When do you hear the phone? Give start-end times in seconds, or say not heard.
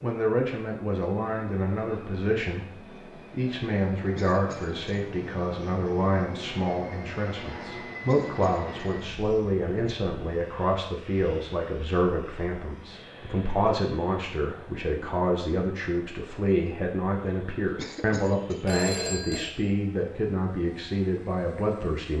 18.6-19.5.